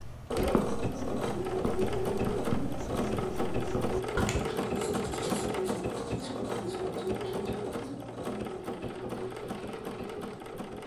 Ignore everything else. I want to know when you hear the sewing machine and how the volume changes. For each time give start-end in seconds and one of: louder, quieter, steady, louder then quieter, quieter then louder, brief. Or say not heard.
0.0-10.8 quieter.